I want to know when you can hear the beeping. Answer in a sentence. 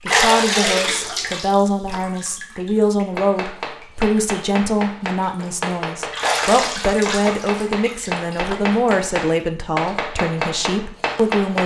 You can't hear the beeping here.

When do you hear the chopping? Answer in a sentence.
You can hear the chopping from 3.1 to 11.6 s.